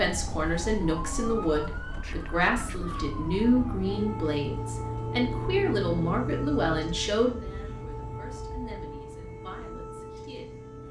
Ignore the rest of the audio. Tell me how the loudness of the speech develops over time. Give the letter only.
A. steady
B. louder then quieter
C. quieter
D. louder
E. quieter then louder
C.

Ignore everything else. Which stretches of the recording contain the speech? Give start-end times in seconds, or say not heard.
0.0-10.8.